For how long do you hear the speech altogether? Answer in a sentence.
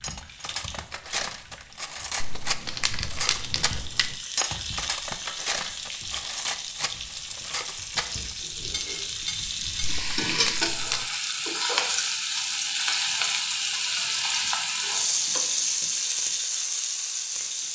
The speech can't be heard in this clip.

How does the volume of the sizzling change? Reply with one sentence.
The loudness of the sizzling goes up.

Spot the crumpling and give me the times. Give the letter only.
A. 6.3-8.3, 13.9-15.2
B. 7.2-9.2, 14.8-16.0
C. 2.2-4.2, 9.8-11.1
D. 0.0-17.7
C.